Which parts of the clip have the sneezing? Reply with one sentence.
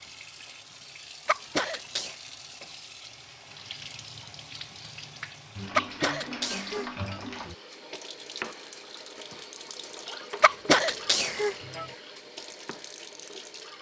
You can hear the sneezing from 1.2 to 2.1 s, from 5.8 to 7.2 s and from 10.4 to 11.8 s.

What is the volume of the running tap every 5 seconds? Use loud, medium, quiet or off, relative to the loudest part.
medium, loud, loud.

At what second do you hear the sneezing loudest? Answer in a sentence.
The volume of the sneezing peaks at 11 seconds.